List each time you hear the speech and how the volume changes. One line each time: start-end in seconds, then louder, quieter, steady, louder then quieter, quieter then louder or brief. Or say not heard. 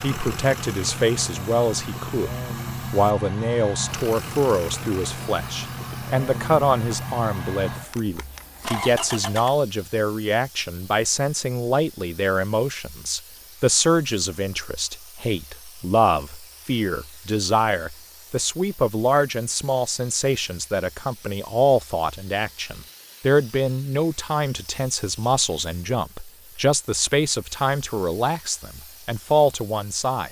0.0-30.2 steady.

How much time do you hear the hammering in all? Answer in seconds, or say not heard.
not heard.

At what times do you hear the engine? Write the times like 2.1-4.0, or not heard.
0.0-9.5.